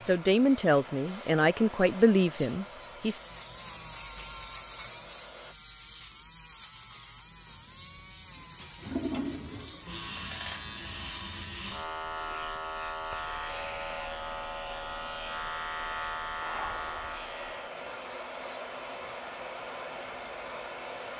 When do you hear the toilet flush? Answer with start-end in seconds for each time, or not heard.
7.5-9.9.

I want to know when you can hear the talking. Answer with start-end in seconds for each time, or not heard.
0.0-3.2.